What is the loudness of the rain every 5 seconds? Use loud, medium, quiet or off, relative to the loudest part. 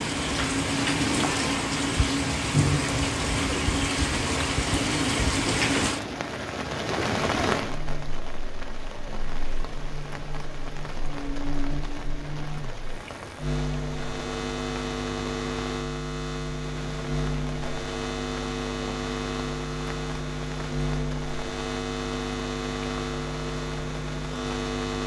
loud, loud, quiet, quiet, quiet.